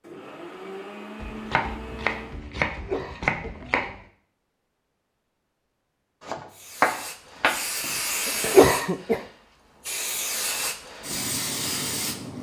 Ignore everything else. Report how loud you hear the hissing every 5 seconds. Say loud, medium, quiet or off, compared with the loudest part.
off, loud, loud.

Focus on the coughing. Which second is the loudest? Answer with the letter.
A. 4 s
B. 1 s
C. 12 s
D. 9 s
D.